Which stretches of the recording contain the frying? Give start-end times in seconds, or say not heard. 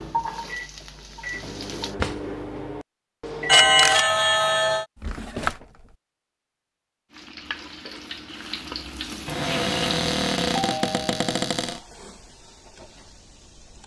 0.0-1.9, 7.1-13.8.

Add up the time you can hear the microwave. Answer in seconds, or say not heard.
4 s.